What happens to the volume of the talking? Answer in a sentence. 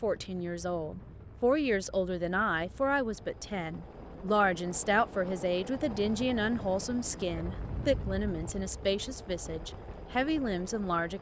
The volume of the talking stays about the same.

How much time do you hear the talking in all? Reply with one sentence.
You can hear the talking for 11 seconds altogether.